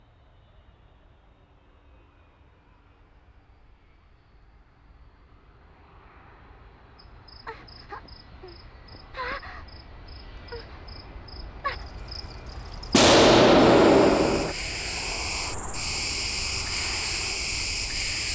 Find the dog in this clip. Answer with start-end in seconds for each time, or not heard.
not heard.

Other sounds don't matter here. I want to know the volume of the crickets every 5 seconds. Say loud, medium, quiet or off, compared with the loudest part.
off, medium, medium, loud.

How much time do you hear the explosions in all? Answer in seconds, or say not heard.
2 s.